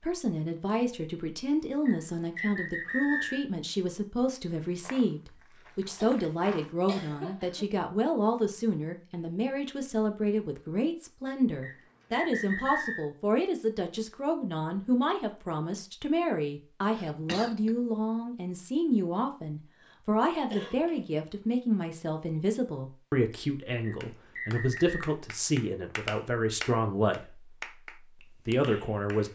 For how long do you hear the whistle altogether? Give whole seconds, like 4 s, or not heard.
4 s.